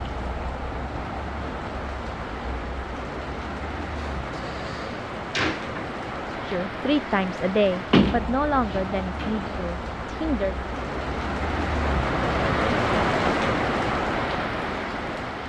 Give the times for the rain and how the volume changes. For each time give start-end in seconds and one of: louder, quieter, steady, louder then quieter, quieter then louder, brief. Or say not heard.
0.0-15.4 louder.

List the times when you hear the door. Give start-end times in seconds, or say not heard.
4.2-5.9, 7.9-9.6.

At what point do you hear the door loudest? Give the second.
8 s.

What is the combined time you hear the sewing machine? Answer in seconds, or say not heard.
not heard.